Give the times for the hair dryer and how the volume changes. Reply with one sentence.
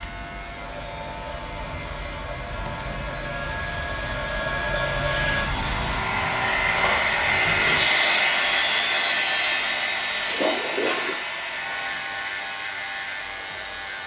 The hair dryer can be heard from 0.0 to 14.0 s, getting louder then quieter.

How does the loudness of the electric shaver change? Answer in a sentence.
The loudness of the electric shaver goes up, then down.